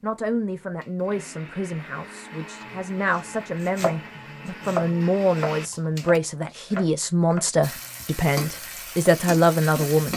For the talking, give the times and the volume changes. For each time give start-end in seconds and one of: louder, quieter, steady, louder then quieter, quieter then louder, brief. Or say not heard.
0.0-10.1 louder.